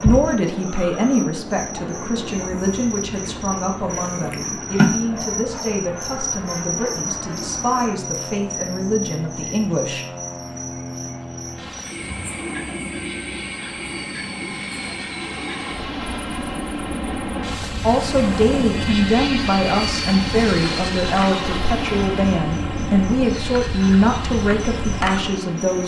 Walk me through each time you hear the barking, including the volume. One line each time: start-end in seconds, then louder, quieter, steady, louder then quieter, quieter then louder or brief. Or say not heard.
not heard.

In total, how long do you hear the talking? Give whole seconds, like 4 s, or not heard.
18 s.